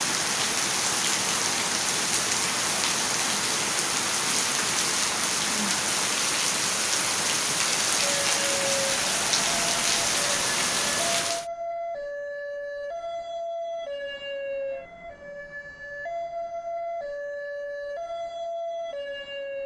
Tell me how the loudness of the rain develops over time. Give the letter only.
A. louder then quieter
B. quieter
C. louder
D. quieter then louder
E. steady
E.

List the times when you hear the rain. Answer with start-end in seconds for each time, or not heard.
0.0-11.4.